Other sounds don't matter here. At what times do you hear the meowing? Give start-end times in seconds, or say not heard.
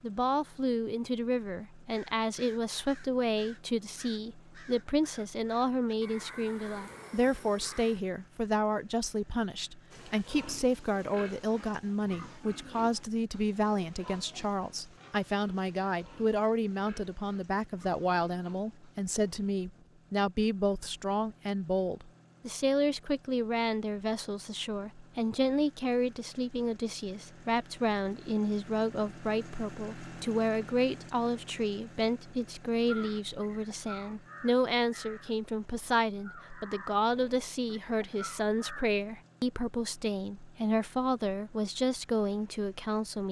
not heard.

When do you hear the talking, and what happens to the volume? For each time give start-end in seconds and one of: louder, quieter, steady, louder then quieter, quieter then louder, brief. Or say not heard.
0.0-43.2 steady.